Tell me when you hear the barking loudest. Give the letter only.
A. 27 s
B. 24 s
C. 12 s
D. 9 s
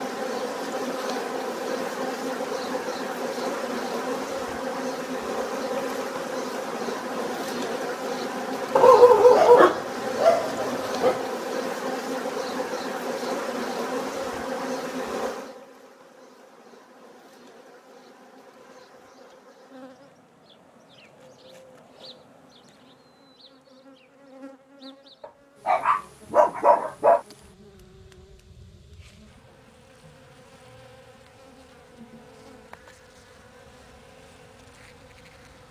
D.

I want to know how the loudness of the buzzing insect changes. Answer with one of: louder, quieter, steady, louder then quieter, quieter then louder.
quieter.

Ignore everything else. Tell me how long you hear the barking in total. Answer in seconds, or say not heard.
4 s.